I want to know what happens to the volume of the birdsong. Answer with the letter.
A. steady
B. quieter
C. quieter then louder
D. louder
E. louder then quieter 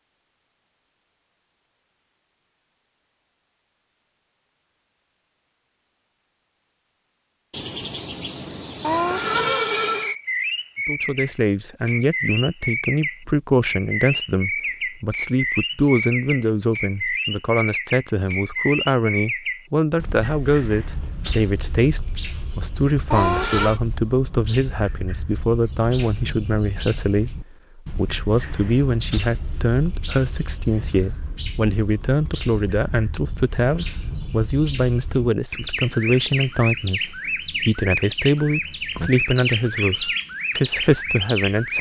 C.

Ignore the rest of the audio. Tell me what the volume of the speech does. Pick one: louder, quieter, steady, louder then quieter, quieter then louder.
steady.